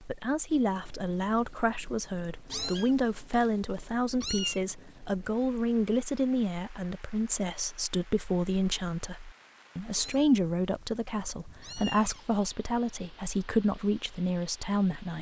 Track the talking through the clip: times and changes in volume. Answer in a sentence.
You can hear the talking from 0.0 to 15.1 s, at a steady volume.